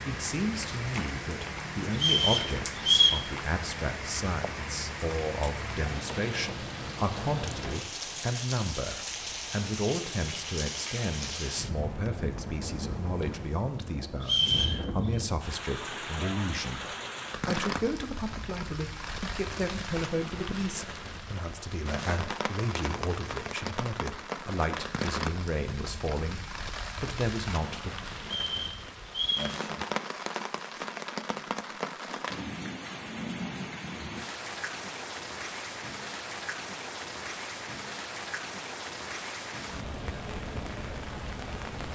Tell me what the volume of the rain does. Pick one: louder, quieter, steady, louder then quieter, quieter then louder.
steady.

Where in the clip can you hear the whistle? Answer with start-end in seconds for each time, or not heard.
1.9-3.2, 14.2-15.2, 28.2-29.6.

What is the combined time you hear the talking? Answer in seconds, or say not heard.
28 s.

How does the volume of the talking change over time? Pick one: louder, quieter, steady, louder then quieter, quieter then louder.
steady.